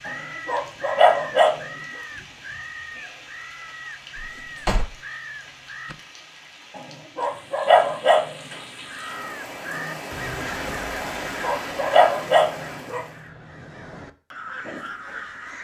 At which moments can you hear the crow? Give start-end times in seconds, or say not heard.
0.0-6.2, 8.8-15.5.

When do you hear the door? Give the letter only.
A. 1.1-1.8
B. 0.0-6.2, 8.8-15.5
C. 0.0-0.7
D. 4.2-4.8
D.